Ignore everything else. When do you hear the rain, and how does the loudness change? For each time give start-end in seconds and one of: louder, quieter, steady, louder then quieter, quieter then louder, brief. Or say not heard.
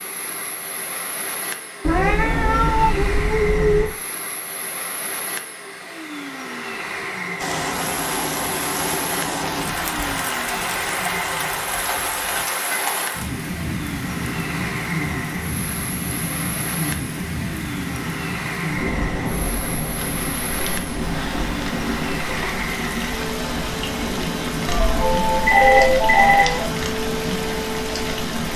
7.4-28.5 steady.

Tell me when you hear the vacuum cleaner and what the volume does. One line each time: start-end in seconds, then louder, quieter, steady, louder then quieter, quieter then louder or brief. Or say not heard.
0.0-28.5 steady.